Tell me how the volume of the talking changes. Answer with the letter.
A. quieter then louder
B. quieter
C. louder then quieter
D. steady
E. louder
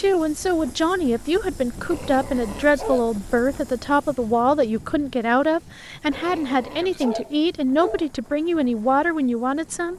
D.